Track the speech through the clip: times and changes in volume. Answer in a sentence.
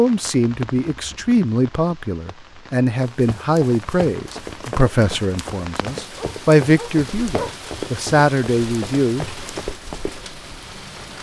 The speech can be heard from 0.0 to 9.2 s, at a steady volume.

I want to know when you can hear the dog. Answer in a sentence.
You can hear the dog from 6.2 to 7.5 s.